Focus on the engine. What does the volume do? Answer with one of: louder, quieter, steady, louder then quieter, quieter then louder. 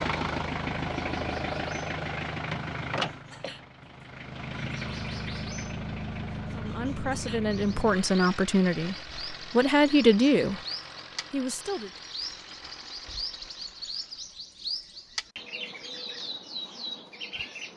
quieter.